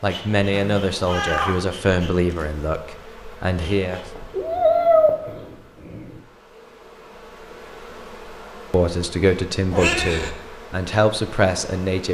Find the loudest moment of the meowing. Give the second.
5 s.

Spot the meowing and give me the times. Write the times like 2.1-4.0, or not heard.
0.5-1.6, 4.3-6.2, 9.7-10.3.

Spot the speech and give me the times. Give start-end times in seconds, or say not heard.
0.0-4.0, 8.7-12.0.